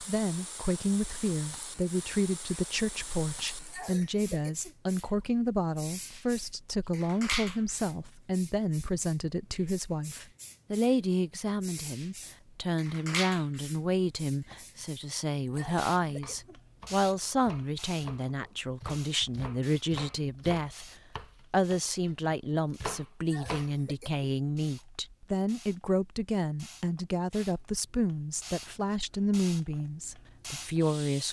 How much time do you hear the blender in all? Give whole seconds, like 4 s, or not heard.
not heard.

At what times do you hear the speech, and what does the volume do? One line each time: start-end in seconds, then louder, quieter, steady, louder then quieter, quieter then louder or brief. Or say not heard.
0.0-31.2 steady.